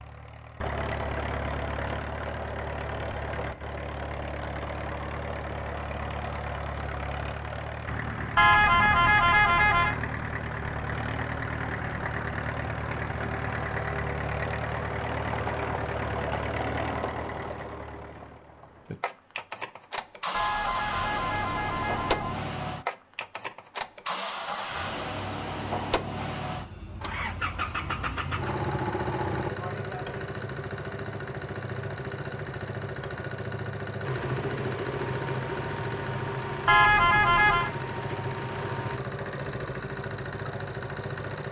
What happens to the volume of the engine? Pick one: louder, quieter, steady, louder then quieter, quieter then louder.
steady.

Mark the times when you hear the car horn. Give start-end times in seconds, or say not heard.
8.3-9.9, 20.3-22.4, 36.6-37.7.